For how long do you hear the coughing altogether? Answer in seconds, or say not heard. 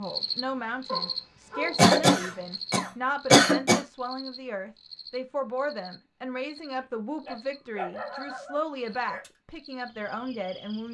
2 s.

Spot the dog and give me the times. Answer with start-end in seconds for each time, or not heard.
0.8-2.5, 7.2-9.3.